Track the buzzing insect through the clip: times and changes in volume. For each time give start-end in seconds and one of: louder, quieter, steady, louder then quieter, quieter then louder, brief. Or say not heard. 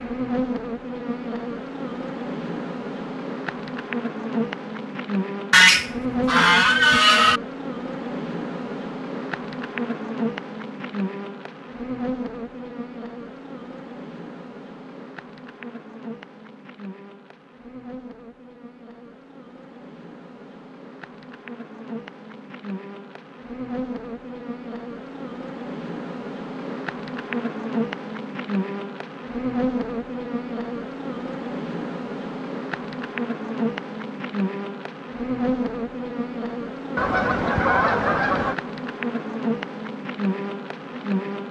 0.0-41.4 quieter then louder.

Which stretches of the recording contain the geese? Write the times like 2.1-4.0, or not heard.
5.5-7.4, 37.0-38.5.